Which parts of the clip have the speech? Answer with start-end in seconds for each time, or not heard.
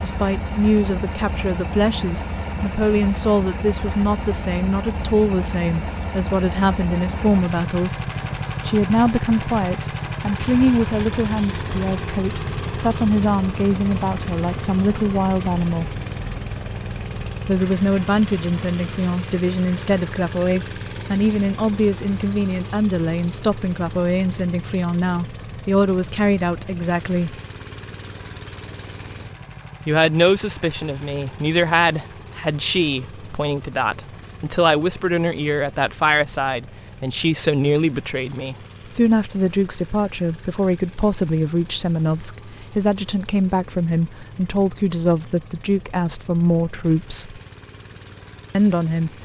0.0-8.0, 8.7-15.9, 17.4-27.4, 29.9-47.4, 48.5-49.1.